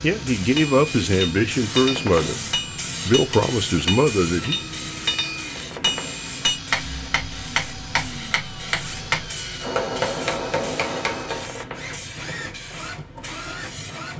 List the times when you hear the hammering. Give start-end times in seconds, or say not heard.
0.6-11.6.